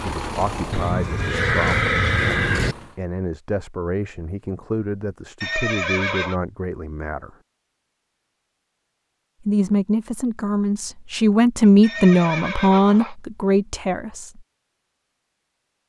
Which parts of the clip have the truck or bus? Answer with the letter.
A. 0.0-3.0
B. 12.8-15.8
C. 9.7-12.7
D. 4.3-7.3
A.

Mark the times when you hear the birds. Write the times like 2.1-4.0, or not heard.
not heard.